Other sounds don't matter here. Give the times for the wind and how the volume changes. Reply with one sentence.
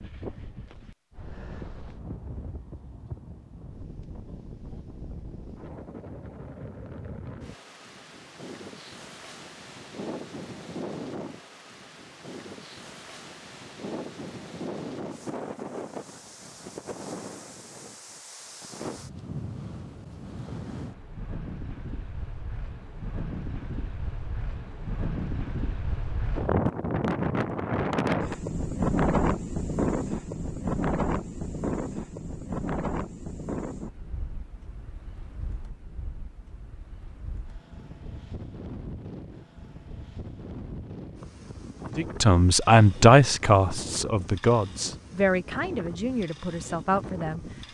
The wind can be heard from 0.0 to 47.6 s, getting louder then quieter.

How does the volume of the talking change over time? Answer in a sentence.
The loudness of the talking goes down.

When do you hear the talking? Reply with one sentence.
You can hear the talking from 42.0 to 47.5 s.